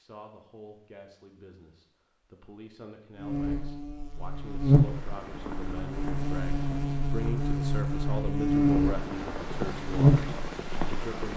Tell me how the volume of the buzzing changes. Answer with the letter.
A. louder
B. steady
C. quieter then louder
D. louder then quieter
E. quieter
C.